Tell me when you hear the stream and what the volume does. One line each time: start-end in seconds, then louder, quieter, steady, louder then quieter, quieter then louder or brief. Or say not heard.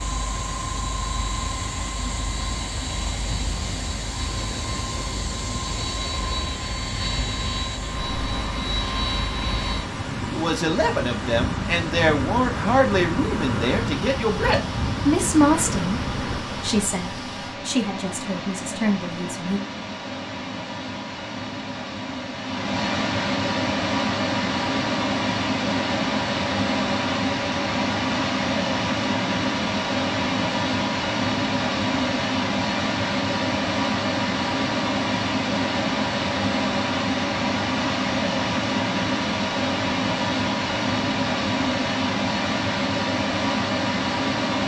0.0-44.6 louder.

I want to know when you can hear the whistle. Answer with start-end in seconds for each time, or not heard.
not heard.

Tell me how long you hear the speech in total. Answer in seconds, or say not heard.
9 s.